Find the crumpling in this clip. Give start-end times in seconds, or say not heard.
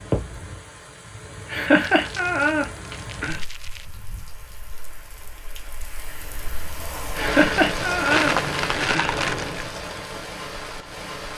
1.9-3.9, 8.1-9.7.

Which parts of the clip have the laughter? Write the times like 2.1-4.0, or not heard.
1.4-3.4, 7.2-9.2.